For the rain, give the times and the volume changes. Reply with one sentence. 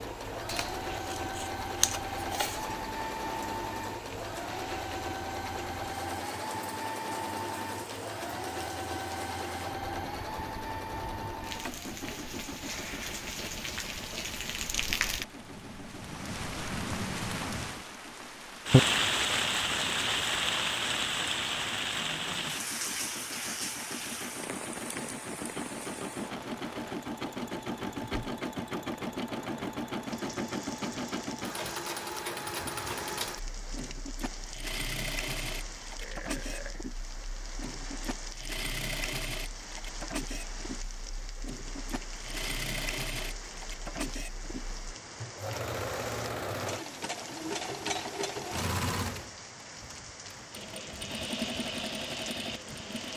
The rain can be heard from 0.0 to 53.1 s, getting louder then quieter.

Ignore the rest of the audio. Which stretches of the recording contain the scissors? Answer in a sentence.
You can hear the scissors from 0.5 to 2.7 s.